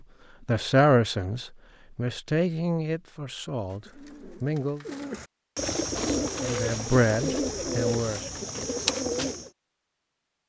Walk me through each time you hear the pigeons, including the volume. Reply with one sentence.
You can hear the pigeons from 3.7 to 9.5 s, getting louder.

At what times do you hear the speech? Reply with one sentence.
The speech can be heard from 0.5 to 4.8 s and from 6.4 to 8.2 s.